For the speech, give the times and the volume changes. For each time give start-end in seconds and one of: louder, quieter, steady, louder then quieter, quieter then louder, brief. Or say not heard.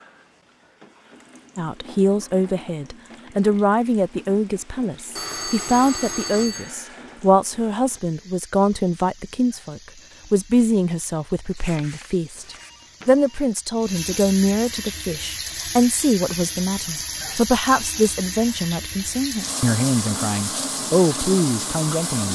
1.6-22.2 steady.